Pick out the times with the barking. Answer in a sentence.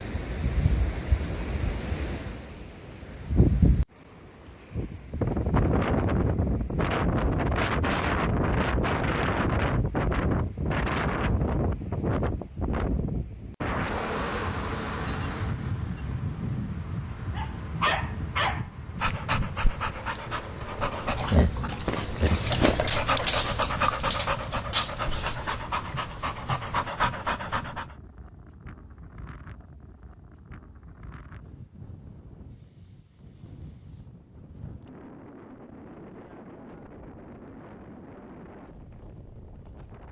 You can hear the barking from 17.4 to 27.9 s.